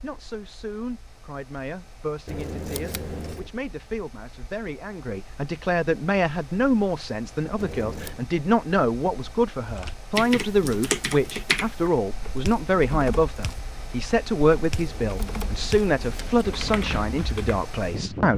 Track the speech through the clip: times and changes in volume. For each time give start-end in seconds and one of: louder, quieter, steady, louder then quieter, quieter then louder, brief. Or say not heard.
0.0-18.3 louder.